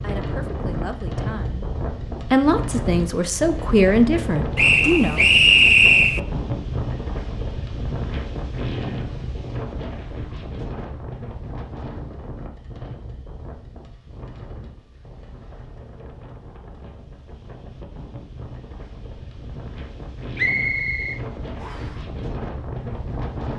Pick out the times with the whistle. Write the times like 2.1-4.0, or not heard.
4.5-6.2, 20.4-21.9.